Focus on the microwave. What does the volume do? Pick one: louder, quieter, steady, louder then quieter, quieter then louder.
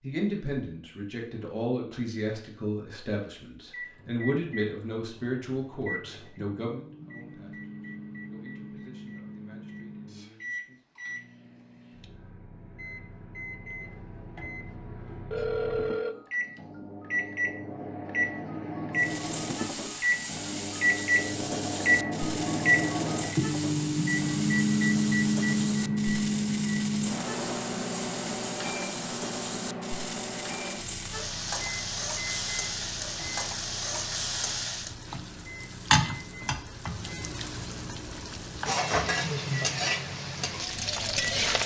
louder then quieter.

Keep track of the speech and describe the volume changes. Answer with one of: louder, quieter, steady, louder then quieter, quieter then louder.
quieter.